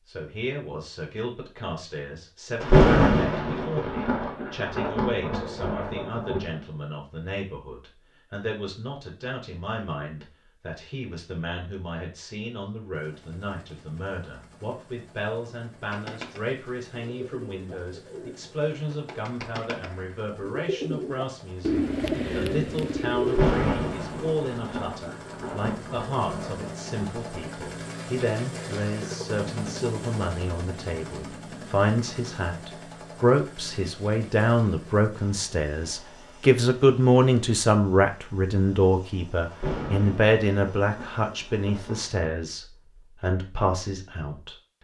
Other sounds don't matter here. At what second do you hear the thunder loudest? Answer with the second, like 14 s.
3 s.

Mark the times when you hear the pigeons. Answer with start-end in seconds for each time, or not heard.
15.9-23.6.